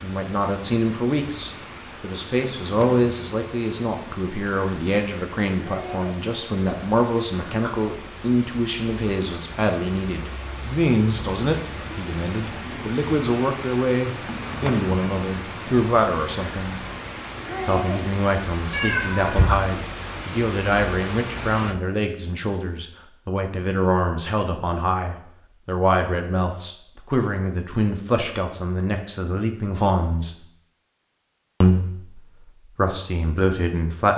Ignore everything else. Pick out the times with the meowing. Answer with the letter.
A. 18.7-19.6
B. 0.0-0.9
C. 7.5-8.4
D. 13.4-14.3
A.